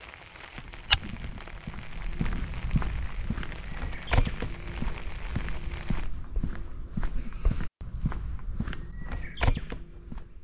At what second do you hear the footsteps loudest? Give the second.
1 s.